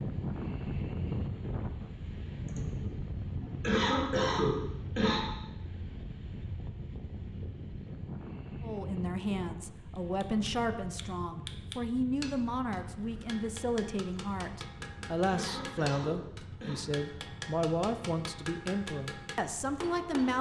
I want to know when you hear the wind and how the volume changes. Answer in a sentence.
The wind can be heard from 0.0 to 20.3 s, getting quieter.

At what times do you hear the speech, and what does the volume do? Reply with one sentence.
You can hear the speech from 8.6 to 20.3 s, at a steady volume.